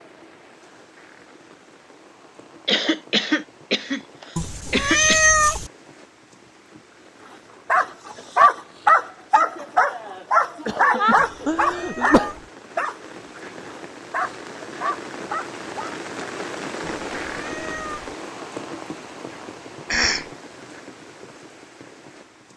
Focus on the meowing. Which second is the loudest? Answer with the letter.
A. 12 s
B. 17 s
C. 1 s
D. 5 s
D.